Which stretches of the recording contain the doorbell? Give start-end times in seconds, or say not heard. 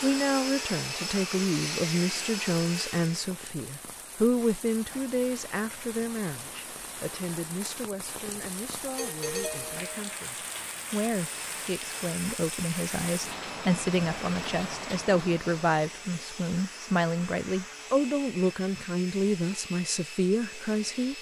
8.8-10.1.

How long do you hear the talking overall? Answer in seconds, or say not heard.
21 s.